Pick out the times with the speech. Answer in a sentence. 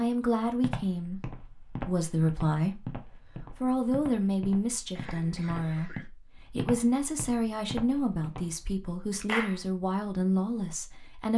The speech can be heard from 0.0 to 11.3 s.